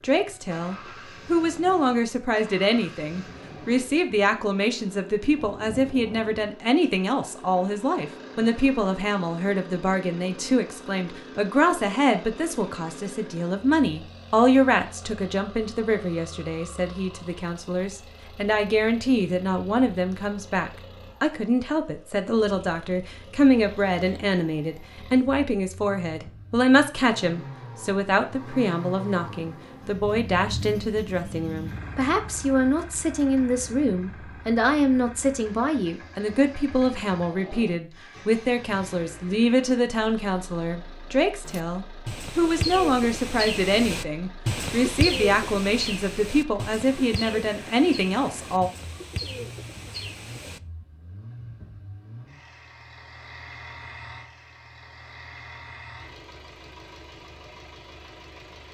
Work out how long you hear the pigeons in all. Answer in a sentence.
The pigeons can be heard for 9 seconds in total.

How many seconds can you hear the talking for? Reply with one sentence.
The talking can be heard for 49 seconds in total.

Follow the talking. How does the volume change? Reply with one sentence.
The loudness of the talking stays about the same.